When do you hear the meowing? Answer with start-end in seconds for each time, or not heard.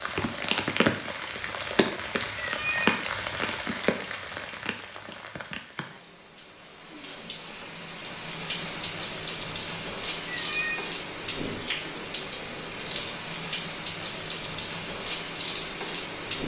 2.4-3.0, 10.2-10.9.